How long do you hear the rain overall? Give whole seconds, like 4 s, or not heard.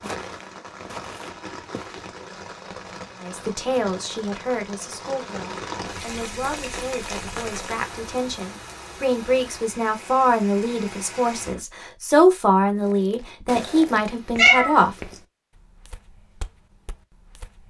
12 s.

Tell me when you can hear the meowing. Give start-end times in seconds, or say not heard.
13.6-14.8.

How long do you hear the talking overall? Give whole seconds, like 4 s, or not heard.
12 s.